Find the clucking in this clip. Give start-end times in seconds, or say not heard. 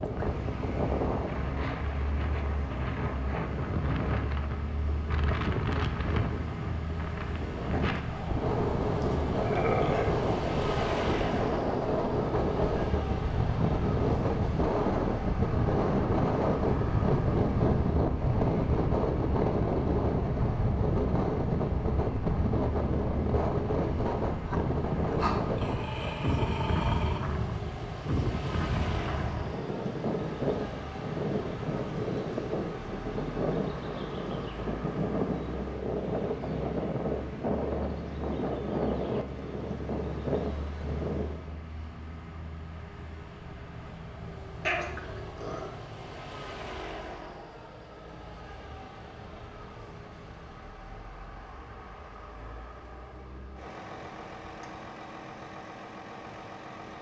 not heard.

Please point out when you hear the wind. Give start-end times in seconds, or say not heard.
0.0-41.6.